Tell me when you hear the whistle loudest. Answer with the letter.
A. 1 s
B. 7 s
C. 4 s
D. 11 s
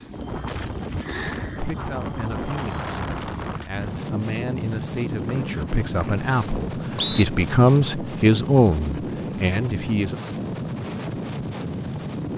B.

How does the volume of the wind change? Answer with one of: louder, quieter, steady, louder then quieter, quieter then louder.
steady.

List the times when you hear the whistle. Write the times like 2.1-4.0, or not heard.
5.2-7.2.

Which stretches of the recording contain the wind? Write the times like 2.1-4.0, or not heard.
0.0-12.3.